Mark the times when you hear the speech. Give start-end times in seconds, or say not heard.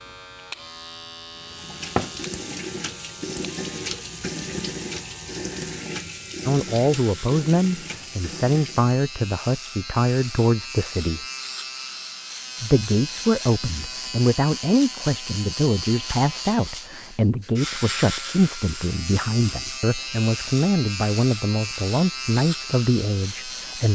6.5-11.2, 12.6-23.8.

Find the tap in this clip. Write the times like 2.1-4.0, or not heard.
1.4-8.9.